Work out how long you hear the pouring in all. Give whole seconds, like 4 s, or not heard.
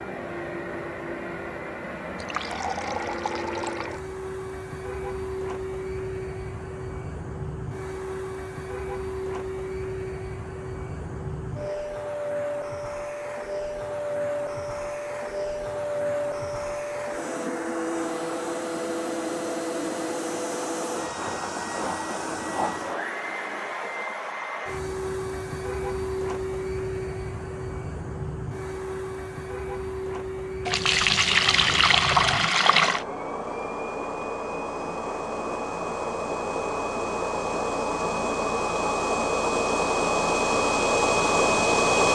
4 s.